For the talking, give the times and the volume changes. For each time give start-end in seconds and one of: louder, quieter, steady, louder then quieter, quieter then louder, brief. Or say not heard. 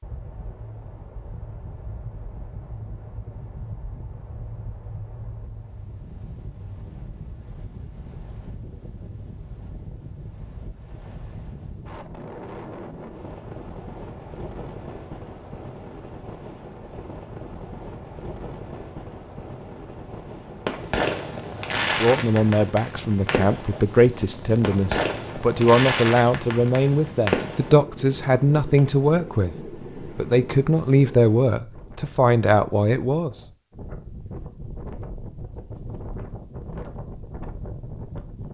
21.8-33.4 steady.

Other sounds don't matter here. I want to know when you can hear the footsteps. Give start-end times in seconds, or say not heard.
not heard.